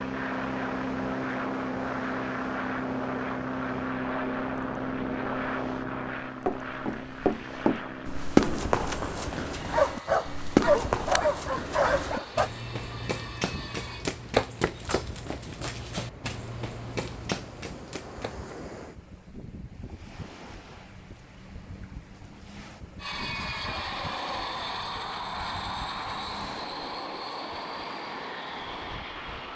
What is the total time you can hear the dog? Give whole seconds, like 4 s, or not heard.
3 s.